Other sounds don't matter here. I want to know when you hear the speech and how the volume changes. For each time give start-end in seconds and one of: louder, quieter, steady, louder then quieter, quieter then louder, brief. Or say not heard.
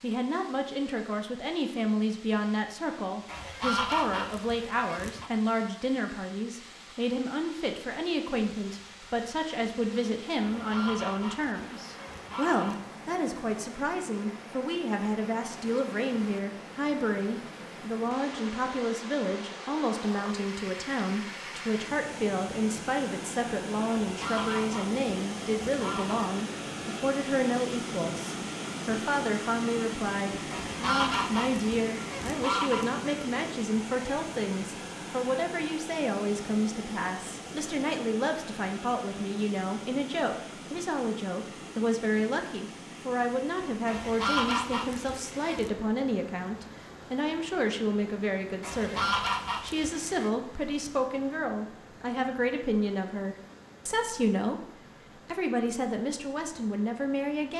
0.0-57.5 steady.